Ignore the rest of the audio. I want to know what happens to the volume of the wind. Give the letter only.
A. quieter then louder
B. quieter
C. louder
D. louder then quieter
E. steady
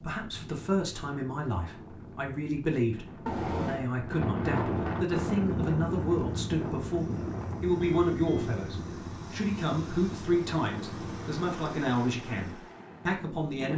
D.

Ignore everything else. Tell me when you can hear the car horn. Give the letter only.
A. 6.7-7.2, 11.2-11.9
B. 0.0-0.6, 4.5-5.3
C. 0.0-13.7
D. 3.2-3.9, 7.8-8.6
D.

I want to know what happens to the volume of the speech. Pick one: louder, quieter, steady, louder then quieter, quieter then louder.
steady.